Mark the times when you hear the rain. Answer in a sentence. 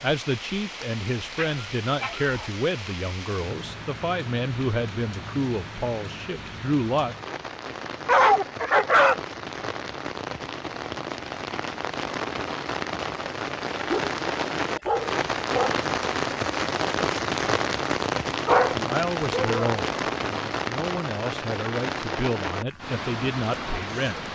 You can hear the rain from 0.0 to 24.3 s.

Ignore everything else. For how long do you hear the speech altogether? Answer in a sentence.
The speech can be heard for 13 seconds in total.